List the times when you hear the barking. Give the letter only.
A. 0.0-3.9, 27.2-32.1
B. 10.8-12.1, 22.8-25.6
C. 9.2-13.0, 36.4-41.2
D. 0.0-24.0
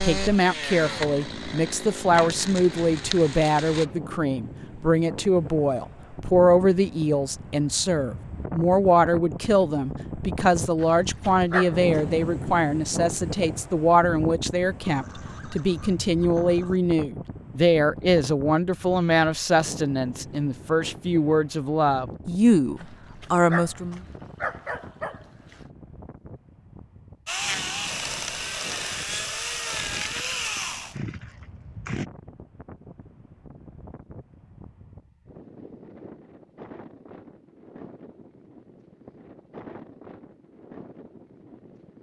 B.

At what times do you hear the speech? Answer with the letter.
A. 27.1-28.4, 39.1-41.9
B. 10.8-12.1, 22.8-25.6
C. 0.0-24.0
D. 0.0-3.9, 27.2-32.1
C.